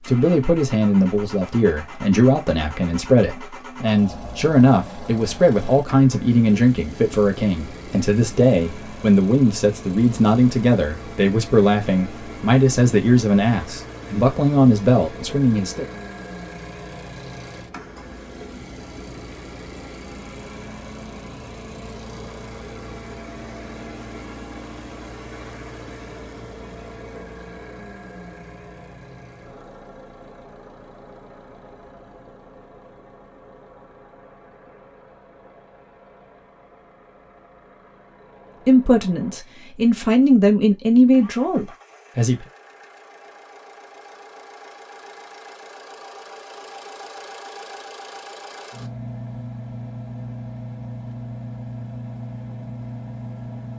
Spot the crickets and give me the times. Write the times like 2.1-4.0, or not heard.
not heard.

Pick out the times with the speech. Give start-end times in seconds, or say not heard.
0.1-15.8, 38.6-42.5.